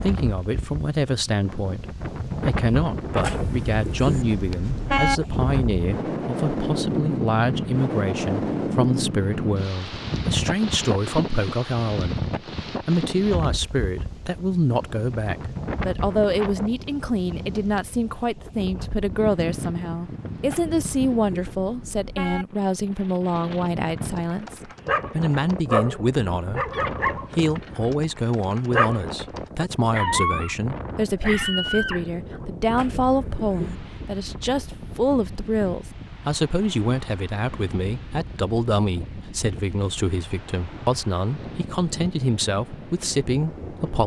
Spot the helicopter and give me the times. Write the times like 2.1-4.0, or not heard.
not heard.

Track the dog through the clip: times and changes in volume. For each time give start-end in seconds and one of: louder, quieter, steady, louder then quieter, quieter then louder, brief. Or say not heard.
23.9-32.4 steady.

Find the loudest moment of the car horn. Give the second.
5 s.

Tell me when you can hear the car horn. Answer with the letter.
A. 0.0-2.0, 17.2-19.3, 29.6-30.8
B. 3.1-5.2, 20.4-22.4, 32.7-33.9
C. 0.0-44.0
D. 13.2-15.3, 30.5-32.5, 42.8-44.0
B.